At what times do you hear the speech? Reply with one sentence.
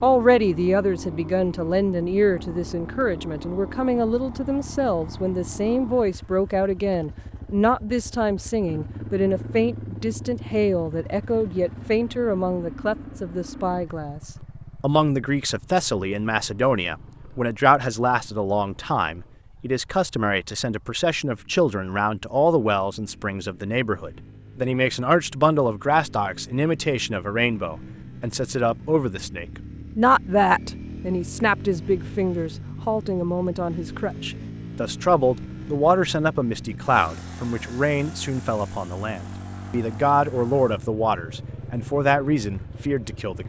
You can hear the speech from 0.0 to 43.4 s.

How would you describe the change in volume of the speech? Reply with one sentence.
The volume of the speech stays about the same.